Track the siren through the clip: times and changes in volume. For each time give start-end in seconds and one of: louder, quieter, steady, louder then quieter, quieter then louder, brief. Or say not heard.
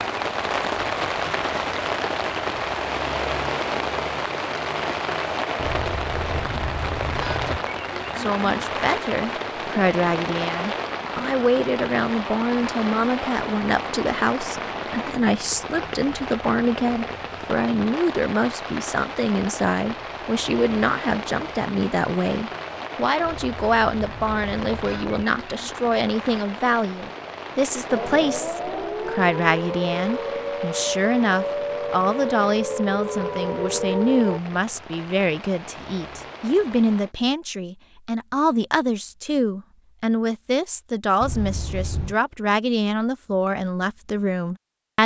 27.9-34.4 steady.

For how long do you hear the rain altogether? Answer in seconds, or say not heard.
37 s.